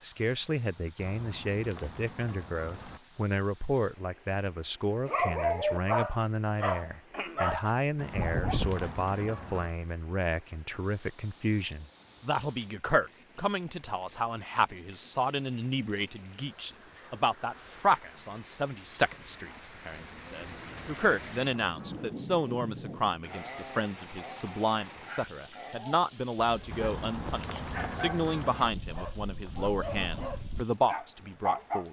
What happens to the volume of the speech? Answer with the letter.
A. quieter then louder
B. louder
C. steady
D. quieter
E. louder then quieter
C.